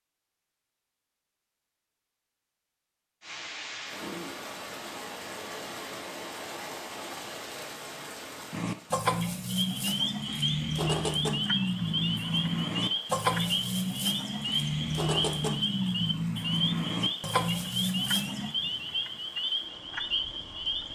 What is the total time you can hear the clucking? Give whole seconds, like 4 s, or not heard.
10 s.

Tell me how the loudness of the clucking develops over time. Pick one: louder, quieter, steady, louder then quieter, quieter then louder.
steady.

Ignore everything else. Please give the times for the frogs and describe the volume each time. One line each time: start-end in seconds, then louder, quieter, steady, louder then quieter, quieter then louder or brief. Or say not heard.
9.4-20.8 steady.